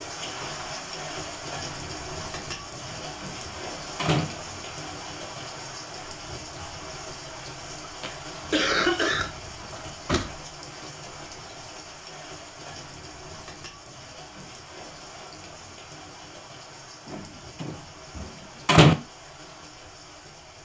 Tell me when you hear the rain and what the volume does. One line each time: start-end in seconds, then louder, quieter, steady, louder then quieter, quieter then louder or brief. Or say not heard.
0.0-20.6 quieter.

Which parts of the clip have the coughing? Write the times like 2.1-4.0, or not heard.
7.6-9.3.